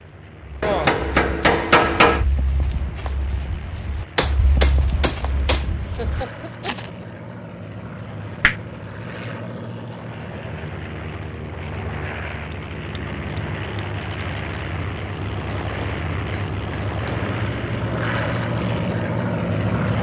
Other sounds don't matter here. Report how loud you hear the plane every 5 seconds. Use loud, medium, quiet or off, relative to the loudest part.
quiet, medium, medium, loud.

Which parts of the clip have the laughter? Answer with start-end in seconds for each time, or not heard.
6.0-6.9.